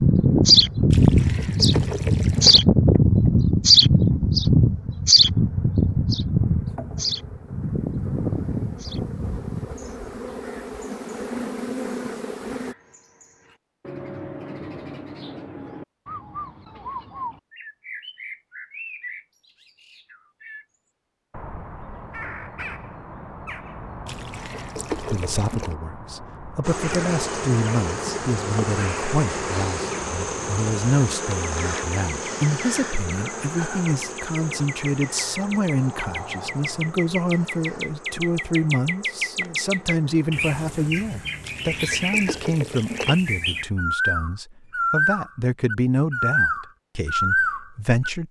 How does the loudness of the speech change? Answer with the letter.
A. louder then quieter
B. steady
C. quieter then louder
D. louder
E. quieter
B.